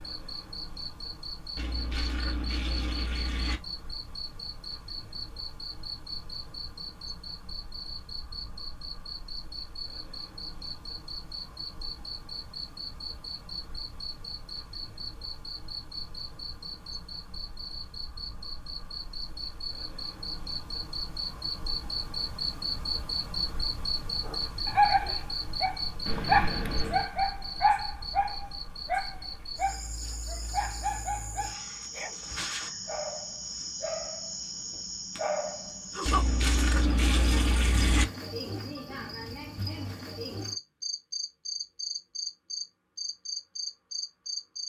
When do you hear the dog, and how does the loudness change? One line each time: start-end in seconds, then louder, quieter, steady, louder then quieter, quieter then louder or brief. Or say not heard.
24.2-35.7 quieter.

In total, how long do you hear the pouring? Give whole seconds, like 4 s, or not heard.
5 s.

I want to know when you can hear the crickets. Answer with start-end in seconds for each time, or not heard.
0.0-44.6.